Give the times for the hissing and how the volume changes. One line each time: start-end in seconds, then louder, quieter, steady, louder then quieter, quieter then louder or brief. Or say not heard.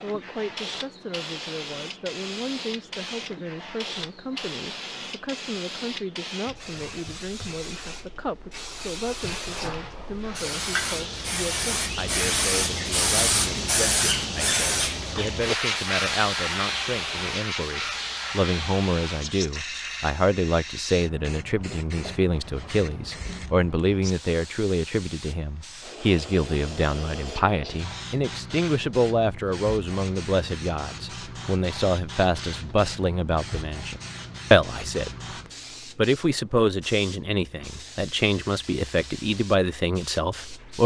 0.0-40.8 louder then quieter.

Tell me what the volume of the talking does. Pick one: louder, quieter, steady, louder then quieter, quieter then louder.
louder.